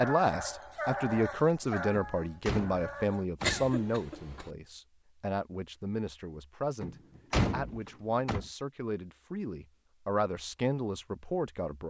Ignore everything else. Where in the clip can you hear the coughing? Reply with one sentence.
You can hear the coughing from 3.4 to 4.5 s.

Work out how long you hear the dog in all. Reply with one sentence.
The dog can be heard for 3 seconds in total.